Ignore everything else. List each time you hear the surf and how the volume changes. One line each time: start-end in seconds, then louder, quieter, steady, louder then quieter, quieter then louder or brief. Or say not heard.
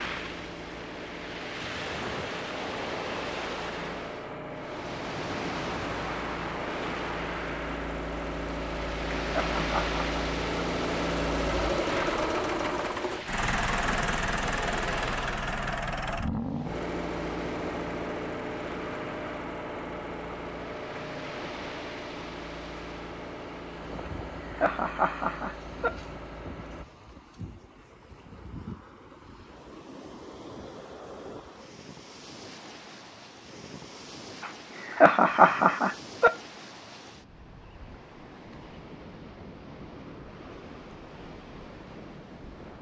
0.0-42.7 quieter.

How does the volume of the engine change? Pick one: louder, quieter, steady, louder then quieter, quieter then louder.
louder then quieter.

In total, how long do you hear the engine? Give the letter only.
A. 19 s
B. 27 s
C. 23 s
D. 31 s
B.